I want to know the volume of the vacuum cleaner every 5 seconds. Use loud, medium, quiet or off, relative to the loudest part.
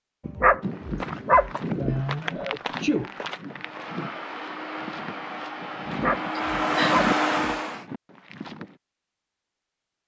medium, loud.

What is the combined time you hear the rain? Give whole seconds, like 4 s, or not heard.
not heard.